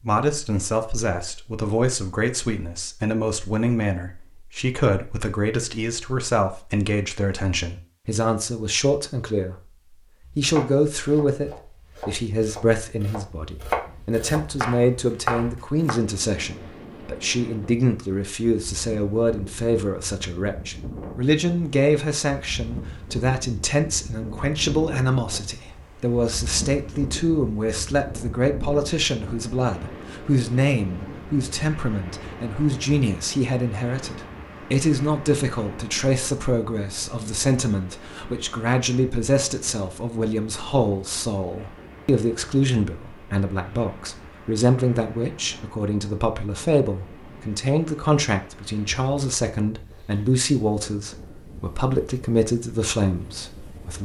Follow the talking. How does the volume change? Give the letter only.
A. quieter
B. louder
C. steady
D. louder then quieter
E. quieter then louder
C.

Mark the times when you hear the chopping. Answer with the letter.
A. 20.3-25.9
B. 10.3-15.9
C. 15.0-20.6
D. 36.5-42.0
B.